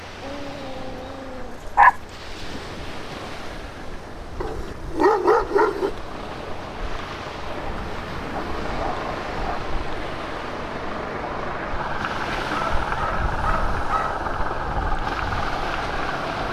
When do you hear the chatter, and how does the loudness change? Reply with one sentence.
You can't hear the chatter here.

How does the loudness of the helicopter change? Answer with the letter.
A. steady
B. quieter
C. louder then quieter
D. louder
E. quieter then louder
D.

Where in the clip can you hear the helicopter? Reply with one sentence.
The helicopter can be heard from 0.0 to 16.4 s.